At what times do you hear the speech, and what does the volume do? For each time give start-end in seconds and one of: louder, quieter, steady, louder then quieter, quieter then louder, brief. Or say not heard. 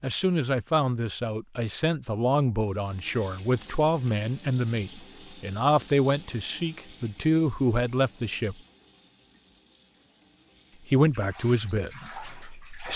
0.0-8.6 steady
10.9-12.9 brief.